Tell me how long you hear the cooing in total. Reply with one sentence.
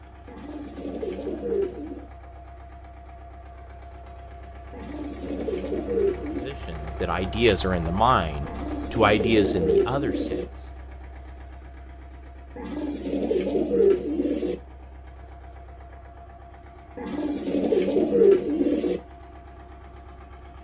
You can hear the cooing for 10 seconds altogether.